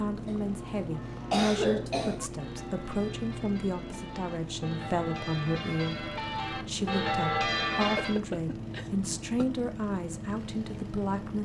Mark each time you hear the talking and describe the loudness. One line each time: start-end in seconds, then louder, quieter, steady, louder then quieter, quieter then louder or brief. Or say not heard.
0.0-11.4 steady.